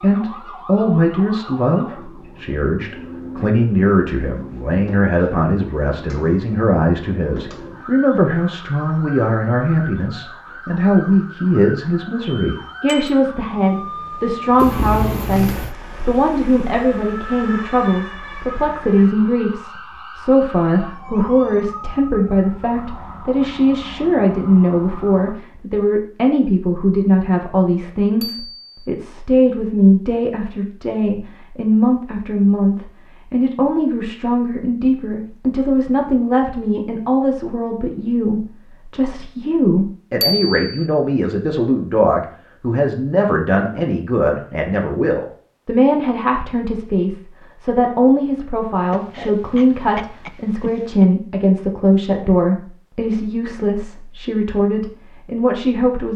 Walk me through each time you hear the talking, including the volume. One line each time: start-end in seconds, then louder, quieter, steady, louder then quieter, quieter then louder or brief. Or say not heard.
0.0-56.1 steady.